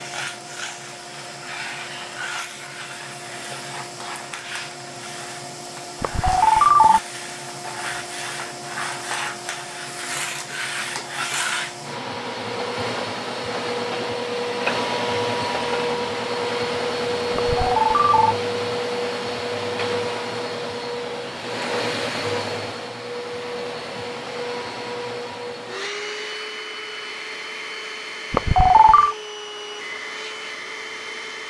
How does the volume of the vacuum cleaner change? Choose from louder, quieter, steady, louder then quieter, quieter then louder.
louder then quieter.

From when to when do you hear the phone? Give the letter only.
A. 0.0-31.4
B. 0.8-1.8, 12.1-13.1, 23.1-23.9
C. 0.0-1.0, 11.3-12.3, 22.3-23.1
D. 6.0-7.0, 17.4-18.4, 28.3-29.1
D.